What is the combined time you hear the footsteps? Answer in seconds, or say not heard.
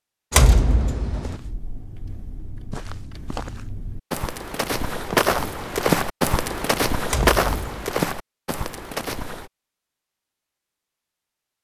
8 s.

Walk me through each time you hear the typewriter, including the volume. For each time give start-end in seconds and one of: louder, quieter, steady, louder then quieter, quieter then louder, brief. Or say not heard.
not heard.